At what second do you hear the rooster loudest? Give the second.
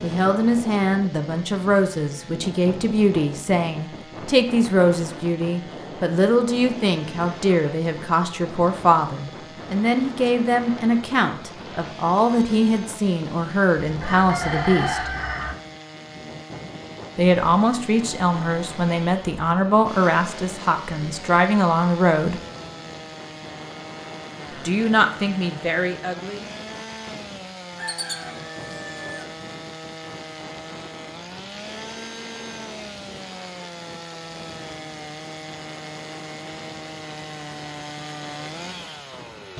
15 s.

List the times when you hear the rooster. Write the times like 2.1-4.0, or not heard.
13.8-15.6, 27.8-29.2.